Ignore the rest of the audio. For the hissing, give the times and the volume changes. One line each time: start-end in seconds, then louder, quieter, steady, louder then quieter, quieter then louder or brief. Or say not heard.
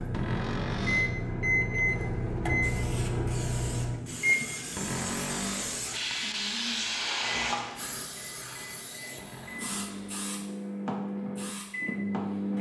2.5-12.5 louder then quieter.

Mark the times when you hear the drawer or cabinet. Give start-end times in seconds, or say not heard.
0.1-1.1, 4.8-5.9, 9.2-10.3.